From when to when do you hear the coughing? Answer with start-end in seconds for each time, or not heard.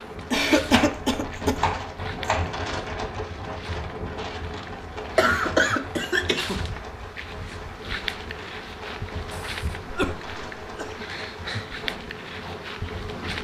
0.3-1.6, 5.2-6.6, 9.3-11.1.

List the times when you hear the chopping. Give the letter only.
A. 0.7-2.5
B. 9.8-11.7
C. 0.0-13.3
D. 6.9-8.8
A.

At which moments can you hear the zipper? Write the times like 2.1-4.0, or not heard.
not heard.